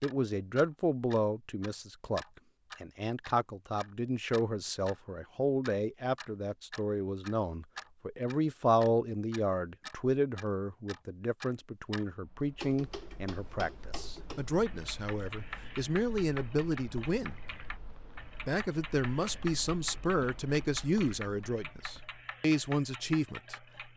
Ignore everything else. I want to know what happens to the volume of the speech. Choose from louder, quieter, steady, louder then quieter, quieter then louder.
steady.